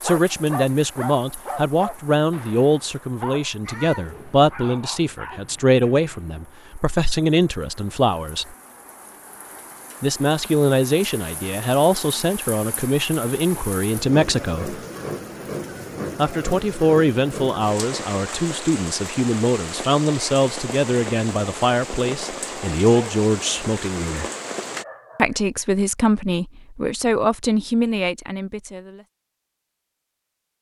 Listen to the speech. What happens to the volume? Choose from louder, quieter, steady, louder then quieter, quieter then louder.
steady.